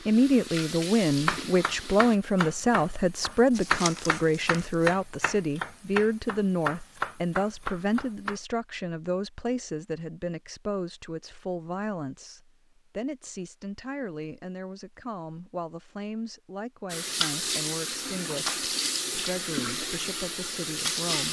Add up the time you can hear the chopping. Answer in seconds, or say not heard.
7 s.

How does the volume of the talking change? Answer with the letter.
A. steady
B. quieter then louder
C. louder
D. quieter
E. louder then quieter
D.